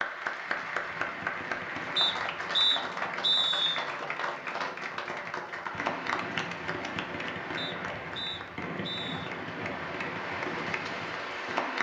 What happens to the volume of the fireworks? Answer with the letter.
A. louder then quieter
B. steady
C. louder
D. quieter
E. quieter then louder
E.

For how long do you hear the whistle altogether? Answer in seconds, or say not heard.
4 s.